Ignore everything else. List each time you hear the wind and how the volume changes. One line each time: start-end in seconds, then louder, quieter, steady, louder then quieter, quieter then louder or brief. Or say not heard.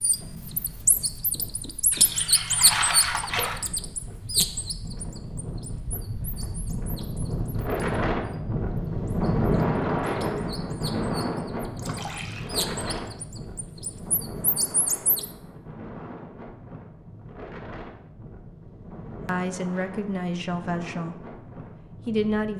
0.0-22.5 louder then quieter.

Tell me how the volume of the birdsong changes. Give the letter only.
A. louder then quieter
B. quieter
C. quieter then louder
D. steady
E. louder
C.